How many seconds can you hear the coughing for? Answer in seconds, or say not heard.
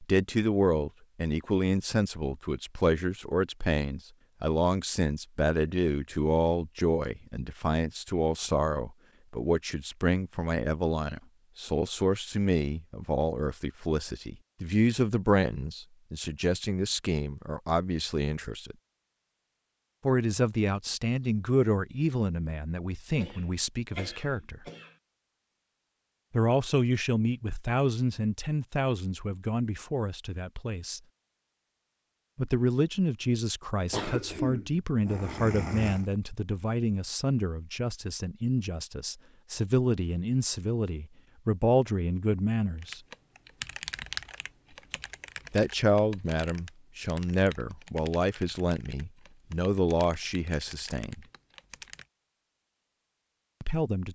4 s.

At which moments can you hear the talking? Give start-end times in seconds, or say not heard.
0.0-18.8, 20.1-24.6, 26.3-31.0, 32.4-43.0, 45.5-51.2, 53.6-54.1.